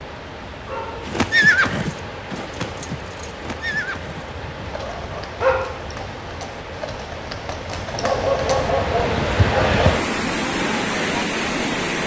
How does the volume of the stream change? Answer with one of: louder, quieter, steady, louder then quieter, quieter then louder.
louder.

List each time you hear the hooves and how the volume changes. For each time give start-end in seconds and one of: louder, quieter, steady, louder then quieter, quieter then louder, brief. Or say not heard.
1.1-9.9 quieter then louder.